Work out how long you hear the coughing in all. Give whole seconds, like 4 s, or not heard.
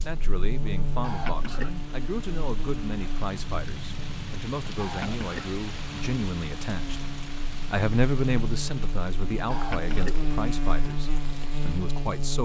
2 s.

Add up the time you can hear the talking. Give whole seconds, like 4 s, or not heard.
12 s.